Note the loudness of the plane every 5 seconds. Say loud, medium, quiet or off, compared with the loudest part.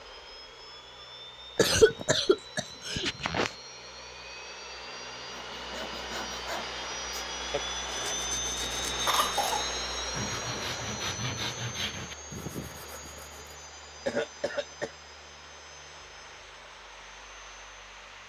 medium, loud, medium, quiet.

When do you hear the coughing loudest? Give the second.
2 s.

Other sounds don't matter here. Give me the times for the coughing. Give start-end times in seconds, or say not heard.
1.6-3.5, 9.1-9.7, 14.1-14.9.